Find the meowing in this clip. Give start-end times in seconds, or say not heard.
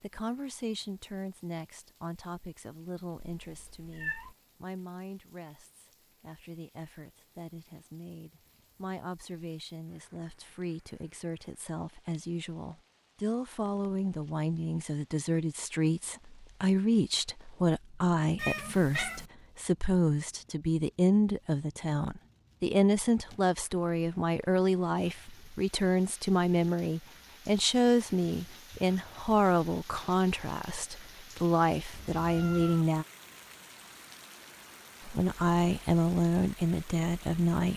3.1-4.3, 18.4-19.2, 31.9-32.9.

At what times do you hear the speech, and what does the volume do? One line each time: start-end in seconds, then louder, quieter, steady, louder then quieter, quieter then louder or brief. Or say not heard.
0.0-33.0 louder
35.0-37.7 brief.